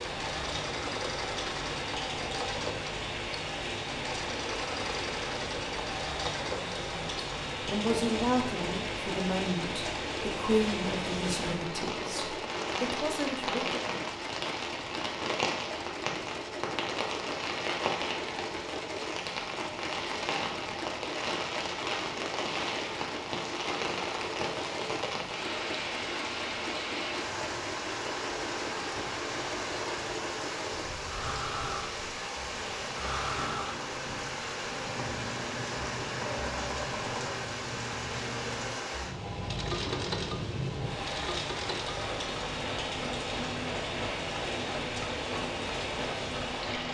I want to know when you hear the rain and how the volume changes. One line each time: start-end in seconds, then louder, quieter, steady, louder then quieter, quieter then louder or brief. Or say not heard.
0.0-46.8 steady.